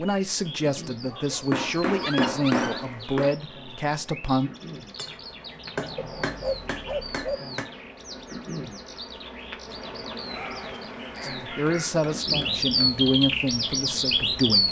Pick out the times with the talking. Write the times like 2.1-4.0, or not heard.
0.0-4.5, 11.2-14.6.